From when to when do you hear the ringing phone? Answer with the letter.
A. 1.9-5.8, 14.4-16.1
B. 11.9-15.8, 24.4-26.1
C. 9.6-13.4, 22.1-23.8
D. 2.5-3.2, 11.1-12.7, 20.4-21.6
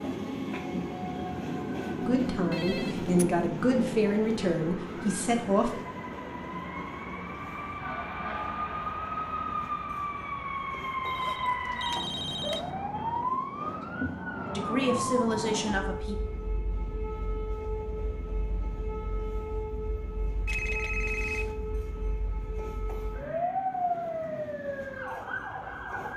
D.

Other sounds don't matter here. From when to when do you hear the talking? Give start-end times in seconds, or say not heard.
1.9-5.8, 14.4-16.1.